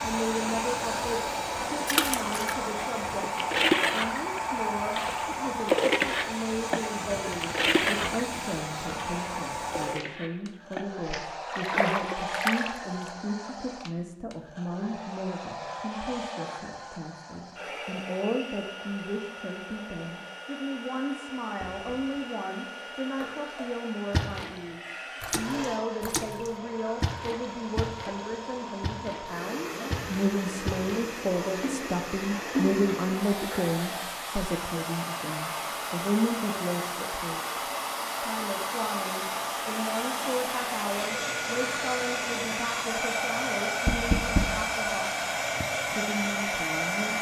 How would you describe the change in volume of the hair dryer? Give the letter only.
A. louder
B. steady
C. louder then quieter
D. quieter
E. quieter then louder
E.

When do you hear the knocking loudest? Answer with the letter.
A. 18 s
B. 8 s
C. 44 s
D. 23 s
C.